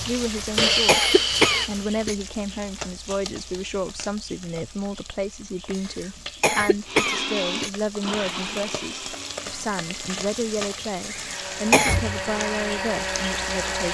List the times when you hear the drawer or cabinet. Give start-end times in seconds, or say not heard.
not heard.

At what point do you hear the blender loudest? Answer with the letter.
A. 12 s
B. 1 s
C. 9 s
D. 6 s
B.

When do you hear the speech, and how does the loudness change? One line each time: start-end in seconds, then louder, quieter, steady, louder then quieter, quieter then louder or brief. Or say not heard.
0.1-13.9 steady.